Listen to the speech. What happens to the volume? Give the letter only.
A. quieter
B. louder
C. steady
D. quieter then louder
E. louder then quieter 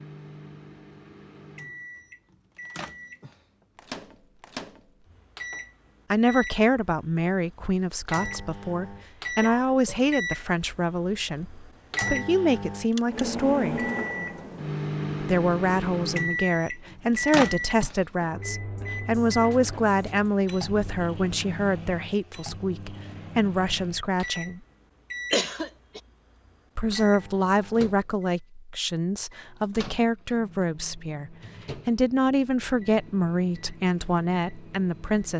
C.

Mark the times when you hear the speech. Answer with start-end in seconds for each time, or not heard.
6.1-13.8, 15.2-24.6, 26.8-35.3.